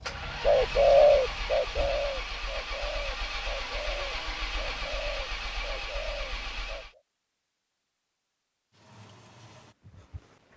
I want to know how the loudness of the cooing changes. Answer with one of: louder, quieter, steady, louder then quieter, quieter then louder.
quieter.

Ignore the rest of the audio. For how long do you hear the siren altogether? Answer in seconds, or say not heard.
not heard.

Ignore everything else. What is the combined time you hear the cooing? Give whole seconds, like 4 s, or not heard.
7 s.